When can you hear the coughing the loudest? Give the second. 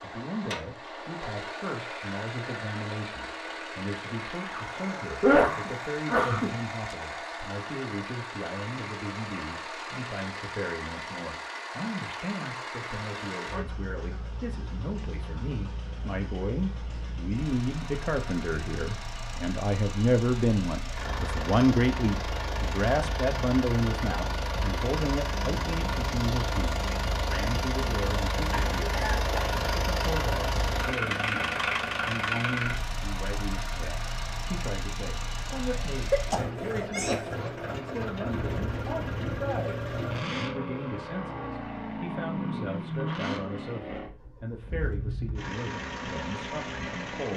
5 s.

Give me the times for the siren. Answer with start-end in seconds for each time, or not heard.
not heard.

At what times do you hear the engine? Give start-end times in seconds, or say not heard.
0.0-47.3.